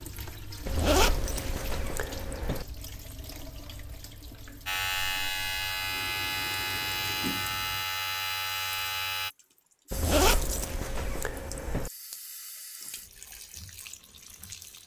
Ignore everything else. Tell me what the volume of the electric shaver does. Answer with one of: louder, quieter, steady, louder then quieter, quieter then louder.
steady.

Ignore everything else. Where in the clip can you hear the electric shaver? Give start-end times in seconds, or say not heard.
4.7-9.3.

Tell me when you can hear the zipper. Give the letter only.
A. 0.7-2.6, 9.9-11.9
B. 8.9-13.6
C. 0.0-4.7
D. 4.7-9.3
A.